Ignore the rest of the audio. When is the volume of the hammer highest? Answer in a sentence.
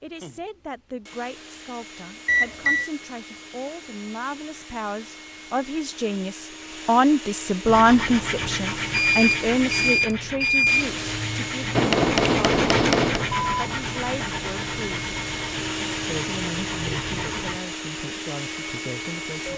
The volume of the hammer peaks at 12 seconds.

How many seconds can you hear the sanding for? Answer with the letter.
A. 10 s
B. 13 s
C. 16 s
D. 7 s
A.